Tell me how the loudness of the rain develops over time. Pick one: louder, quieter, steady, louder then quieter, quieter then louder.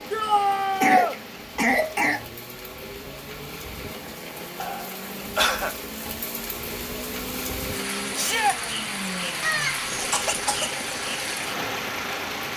louder.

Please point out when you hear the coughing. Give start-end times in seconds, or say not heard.
0.3-2.2, 4.6-5.8, 9.4-10.7.